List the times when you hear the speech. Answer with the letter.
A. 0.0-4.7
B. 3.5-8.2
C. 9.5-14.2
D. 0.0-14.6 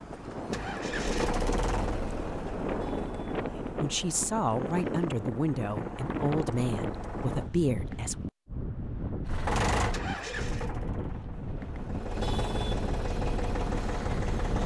B.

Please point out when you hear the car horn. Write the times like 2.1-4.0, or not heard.
not heard.